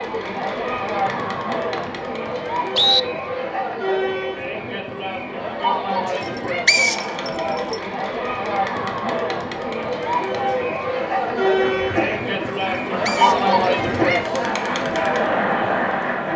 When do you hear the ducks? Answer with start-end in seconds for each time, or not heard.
11.2-16.3.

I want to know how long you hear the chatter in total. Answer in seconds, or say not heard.
16 s.